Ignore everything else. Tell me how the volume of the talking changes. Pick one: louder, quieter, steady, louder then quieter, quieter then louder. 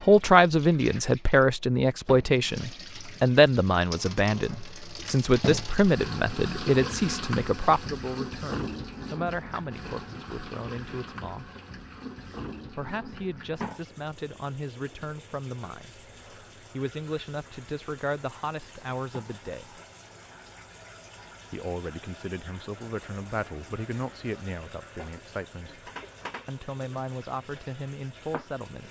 quieter.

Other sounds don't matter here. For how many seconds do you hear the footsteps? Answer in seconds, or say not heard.
not heard.